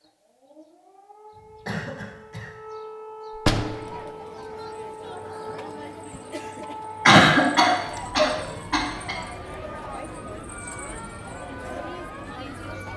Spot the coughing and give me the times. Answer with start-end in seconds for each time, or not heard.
1.4-2.5, 7.0-9.2.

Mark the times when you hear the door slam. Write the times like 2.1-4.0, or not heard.
3.4-4.1.